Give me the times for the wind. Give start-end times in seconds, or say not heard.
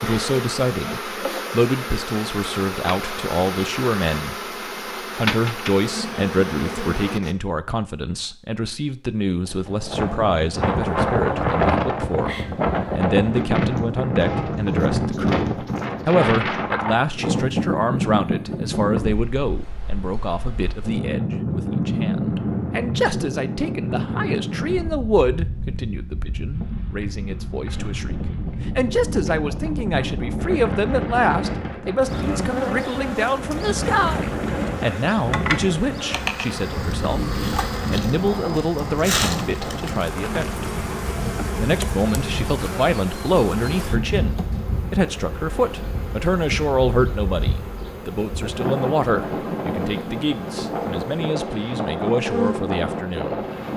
9.4-53.7.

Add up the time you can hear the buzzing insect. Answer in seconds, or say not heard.
29 s.